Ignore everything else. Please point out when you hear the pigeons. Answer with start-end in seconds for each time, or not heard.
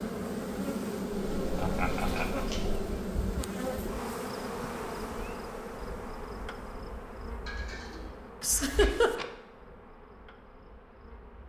1.1-2.9, 7.5-9.1.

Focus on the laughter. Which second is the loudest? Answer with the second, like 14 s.
9 s.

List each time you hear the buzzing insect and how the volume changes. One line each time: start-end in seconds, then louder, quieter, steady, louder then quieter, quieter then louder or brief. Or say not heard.
0.0-11.4 quieter.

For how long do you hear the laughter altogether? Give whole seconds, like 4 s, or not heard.
2 s.